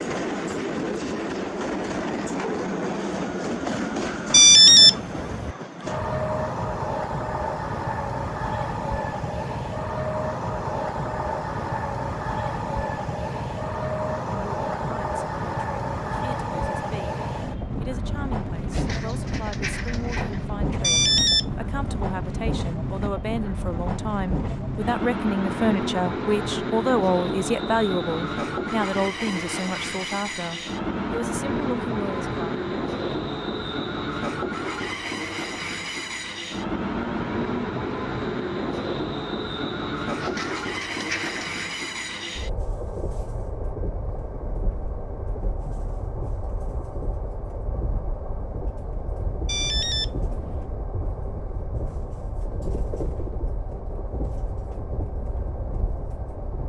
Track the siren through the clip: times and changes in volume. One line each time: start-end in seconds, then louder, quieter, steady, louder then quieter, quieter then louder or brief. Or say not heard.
not heard.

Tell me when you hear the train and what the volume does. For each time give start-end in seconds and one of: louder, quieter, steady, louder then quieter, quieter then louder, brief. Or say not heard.
0.0-56.6 quieter.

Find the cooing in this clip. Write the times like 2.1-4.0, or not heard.
18.7-20.4, 40.1-41.8.